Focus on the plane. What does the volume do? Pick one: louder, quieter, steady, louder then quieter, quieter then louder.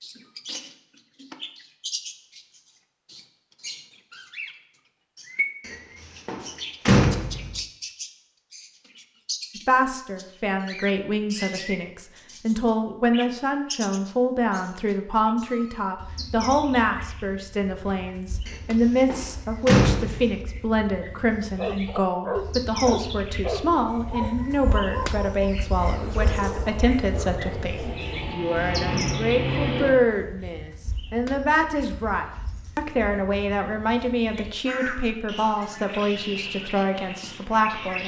louder.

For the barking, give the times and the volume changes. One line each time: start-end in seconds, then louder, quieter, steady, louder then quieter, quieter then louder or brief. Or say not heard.
21.6-28.3 quieter.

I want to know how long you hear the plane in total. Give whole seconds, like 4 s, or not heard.
4 s.